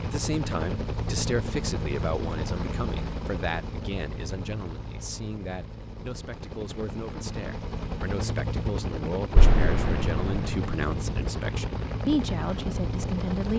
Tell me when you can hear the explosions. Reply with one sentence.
The explosions can be heard from 9.3 to 10.6 s.